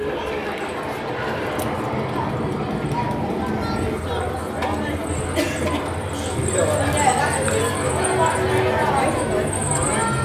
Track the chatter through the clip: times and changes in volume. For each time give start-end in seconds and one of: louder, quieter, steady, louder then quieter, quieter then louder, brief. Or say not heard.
0.0-10.1 louder.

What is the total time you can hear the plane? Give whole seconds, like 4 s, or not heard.
10 s.